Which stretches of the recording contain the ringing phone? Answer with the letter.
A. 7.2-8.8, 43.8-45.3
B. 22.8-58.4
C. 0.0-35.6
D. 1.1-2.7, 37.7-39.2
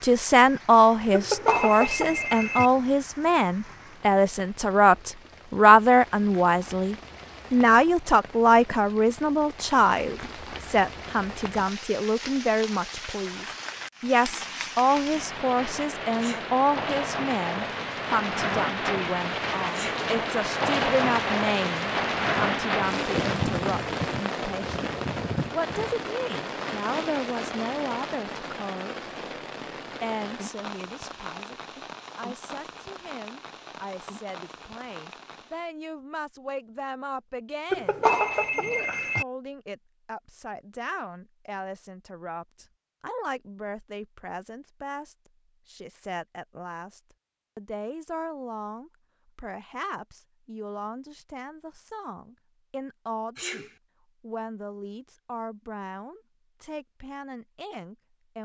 D.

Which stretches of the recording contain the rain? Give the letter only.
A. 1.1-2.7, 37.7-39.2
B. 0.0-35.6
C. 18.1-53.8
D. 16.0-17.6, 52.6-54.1
B.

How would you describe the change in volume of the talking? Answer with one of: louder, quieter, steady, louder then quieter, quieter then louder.
quieter.